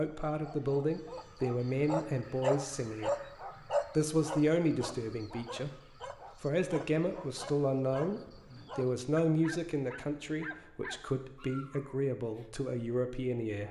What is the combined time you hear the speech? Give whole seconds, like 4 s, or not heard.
12 s.